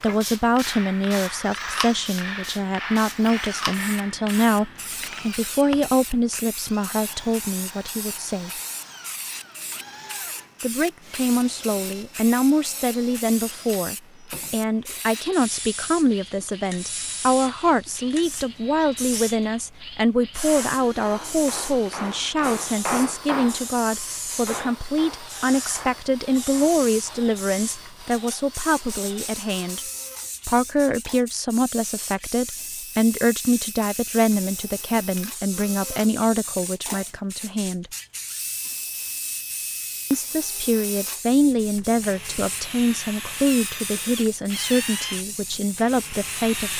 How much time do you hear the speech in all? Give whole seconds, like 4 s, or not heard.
42 s.